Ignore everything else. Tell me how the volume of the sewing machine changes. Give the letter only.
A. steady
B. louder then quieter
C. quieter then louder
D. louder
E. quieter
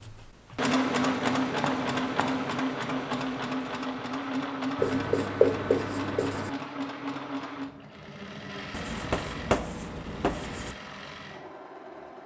E.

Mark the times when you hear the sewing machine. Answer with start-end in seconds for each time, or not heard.
0.0-12.2.